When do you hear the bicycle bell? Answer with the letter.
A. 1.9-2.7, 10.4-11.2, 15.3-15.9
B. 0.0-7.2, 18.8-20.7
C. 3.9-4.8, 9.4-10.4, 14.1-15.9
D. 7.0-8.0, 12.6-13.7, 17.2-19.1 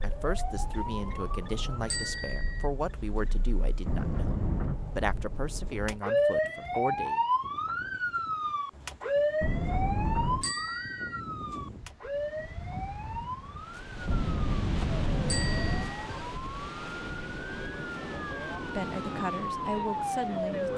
A.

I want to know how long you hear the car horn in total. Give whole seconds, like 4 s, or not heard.
4 s.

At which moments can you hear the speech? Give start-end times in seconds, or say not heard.
0.0-7.2, 18.8-20.7.